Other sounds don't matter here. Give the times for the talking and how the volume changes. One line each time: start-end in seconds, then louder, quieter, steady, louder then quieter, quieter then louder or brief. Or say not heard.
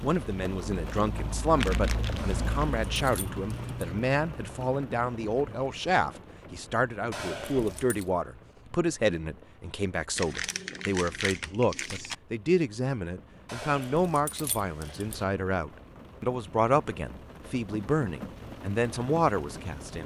0.0-20.0 steady.